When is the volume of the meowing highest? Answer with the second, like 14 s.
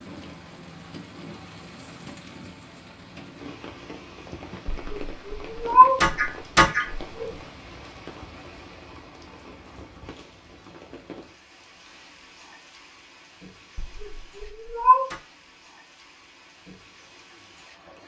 6 s.